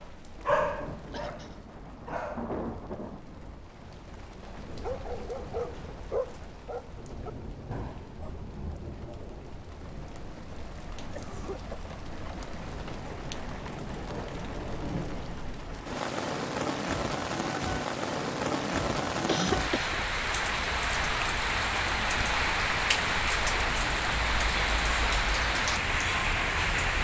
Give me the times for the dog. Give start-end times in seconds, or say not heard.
0.0-2.5, 4.7-8.5.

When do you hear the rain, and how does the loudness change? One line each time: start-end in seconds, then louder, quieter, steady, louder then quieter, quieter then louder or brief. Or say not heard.
0.0-27.0 louder.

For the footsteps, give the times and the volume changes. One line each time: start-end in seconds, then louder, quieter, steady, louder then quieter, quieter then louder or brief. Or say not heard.
not heard.